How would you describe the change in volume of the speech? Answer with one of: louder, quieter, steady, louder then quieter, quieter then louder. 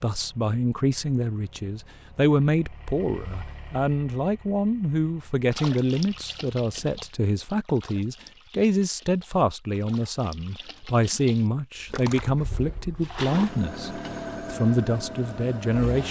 steady.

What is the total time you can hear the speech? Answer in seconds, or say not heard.
16 s.